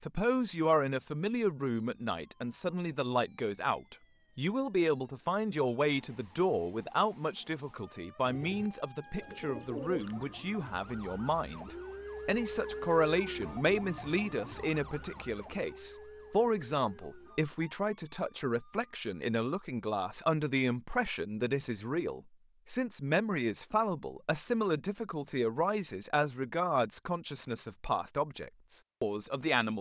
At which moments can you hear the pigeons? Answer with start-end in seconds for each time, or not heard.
8.2-10.2.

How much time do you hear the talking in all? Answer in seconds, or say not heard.
30 s.